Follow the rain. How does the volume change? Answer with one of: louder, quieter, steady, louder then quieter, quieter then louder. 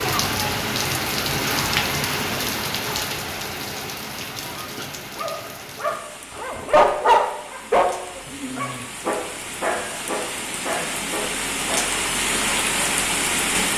quieter then louder.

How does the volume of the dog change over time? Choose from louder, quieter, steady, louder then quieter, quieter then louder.
louder then quieter.